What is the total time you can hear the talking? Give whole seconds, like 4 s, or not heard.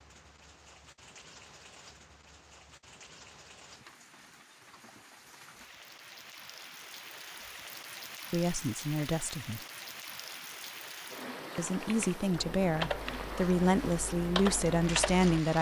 5 s.